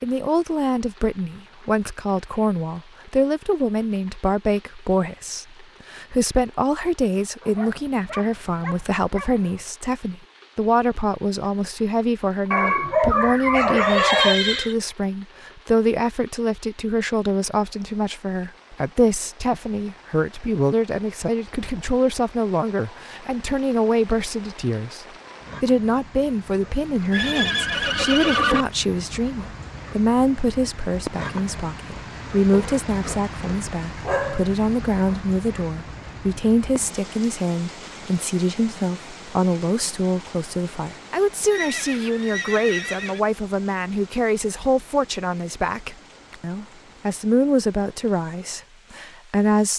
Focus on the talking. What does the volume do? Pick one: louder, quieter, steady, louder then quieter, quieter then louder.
steady.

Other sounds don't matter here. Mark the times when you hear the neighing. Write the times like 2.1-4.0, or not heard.
13.0-14.8, 27.1-28.6, 41.5-43.2.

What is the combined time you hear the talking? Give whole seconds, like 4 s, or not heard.
50 s.